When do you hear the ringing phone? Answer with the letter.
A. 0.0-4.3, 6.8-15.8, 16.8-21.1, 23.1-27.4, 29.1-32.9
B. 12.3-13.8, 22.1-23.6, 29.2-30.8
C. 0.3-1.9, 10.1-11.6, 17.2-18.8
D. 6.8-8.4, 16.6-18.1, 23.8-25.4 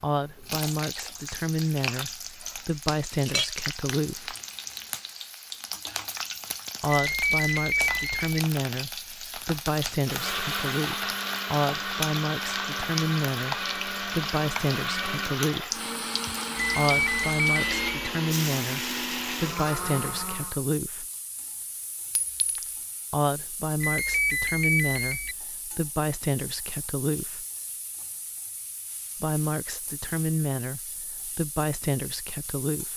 D.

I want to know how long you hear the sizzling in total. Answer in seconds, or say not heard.
33 s.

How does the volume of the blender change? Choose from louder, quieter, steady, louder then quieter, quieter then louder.
steady.